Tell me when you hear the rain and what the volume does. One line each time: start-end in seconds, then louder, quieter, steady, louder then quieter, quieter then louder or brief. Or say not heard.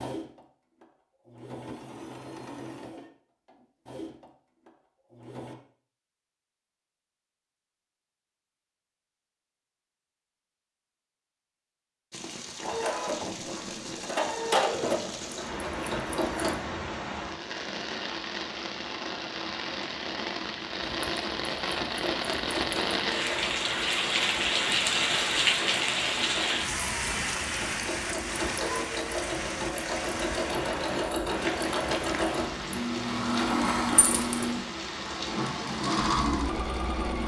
12.1-37.2 louder then quieter.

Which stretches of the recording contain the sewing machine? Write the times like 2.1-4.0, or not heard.
0.0-5.5, 12.6-16.6, 20.8-37.2.